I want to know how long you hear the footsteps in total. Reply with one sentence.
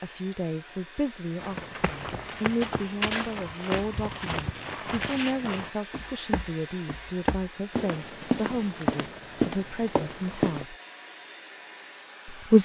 You can hear the footsteps for 9 seconds altogether.